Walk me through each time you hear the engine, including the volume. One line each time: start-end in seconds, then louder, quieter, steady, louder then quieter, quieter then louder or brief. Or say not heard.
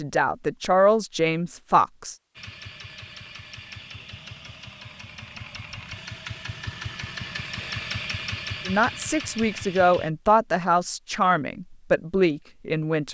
2.4-10.1 louder.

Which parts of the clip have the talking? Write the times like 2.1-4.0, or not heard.
0.0-2.1, 8.7-13.0.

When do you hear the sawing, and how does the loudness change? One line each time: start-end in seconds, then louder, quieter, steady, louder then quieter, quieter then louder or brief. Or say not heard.
not heard.